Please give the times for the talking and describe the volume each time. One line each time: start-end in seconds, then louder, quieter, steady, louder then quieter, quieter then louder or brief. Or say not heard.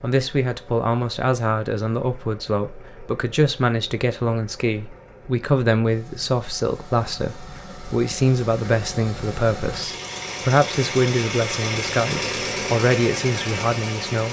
0.0-14.2 steady.